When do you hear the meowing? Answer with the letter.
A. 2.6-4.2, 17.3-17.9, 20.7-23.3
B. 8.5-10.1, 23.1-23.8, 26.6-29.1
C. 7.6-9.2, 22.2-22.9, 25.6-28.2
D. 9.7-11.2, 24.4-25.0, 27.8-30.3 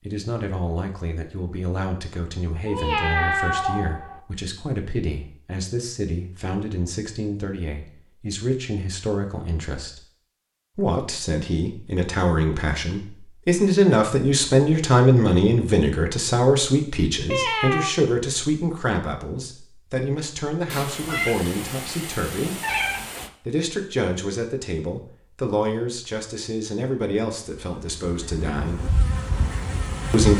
A.